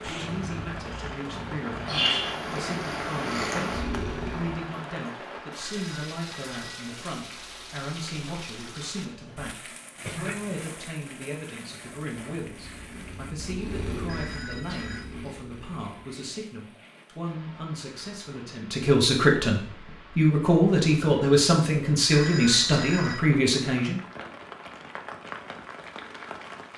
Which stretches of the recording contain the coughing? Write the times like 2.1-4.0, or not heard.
10.0-10.6.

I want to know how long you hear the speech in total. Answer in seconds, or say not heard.
24 s.